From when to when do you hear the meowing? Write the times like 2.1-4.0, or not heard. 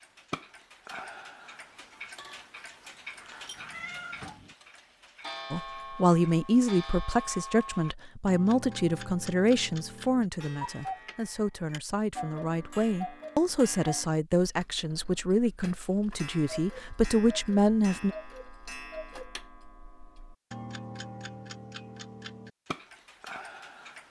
3.5-4.5.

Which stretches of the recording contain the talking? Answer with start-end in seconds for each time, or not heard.
5.5-18.1.